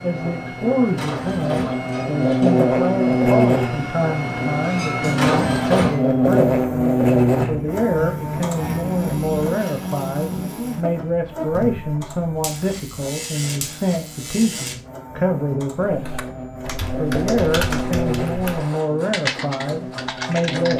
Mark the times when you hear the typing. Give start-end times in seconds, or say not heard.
15.8-20.7.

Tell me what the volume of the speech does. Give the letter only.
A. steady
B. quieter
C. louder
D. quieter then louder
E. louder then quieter
A.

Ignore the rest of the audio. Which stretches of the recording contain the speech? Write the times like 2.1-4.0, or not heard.
0.0-6.5, 7.5-16.1, 16.9-20.7.